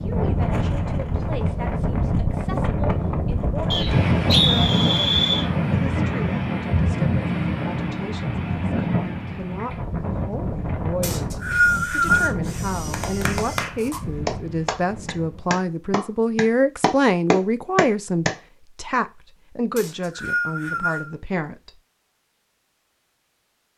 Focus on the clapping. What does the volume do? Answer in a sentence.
The loudness of the clapping goes up.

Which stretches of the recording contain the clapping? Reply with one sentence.
You can hear the clapping from 12.9 to 18.3 s.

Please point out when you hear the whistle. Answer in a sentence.
The whistle can be heard from 3.7 to 5.5 s, from 11.0 to 12.3 s and from 19.8 to 21.1 s.